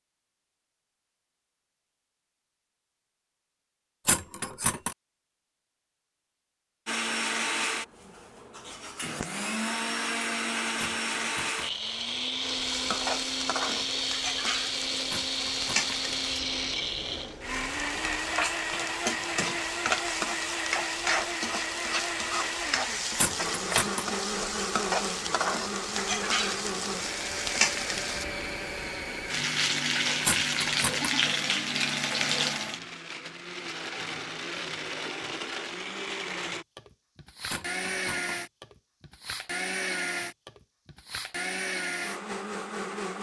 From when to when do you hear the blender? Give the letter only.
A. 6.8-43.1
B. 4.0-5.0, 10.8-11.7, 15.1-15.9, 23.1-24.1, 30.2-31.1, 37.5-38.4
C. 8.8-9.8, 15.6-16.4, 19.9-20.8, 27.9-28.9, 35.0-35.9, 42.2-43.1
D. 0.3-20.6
A.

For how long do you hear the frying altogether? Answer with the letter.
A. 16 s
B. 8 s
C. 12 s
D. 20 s
D.